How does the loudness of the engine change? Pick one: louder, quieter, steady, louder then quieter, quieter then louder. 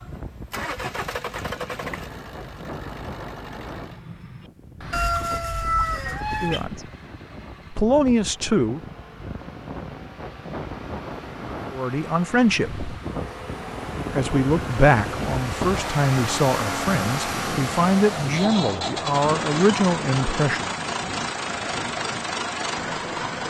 quieter then louder.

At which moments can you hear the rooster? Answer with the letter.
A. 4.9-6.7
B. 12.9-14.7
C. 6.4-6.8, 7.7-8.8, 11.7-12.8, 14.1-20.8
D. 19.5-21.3
A.